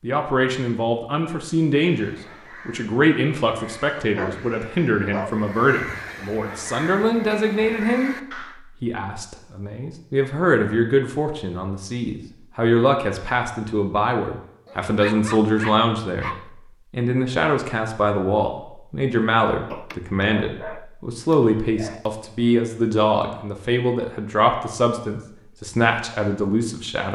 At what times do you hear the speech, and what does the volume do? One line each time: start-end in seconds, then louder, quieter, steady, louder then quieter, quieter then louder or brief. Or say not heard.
0.0-27.1 steady.